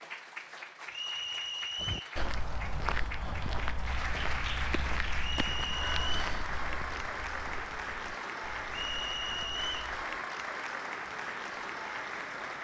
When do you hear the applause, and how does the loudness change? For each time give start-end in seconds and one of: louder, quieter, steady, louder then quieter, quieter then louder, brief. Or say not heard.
0.0-12.5 louder.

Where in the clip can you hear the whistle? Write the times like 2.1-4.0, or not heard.
0.9-2.1, 5.2-6.2, 8.7-9.9.